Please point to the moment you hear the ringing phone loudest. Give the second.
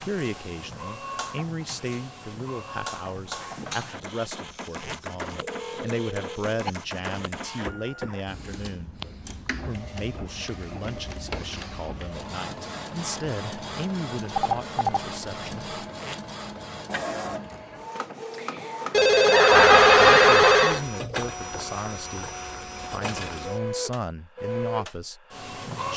20 s.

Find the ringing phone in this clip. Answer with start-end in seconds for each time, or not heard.
5.3-6.7, 14.3-15.0, 18.9-20.8.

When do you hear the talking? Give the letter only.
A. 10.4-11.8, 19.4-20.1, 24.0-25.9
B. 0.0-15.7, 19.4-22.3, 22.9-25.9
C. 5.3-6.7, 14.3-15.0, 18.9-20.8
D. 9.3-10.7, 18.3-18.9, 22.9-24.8
B.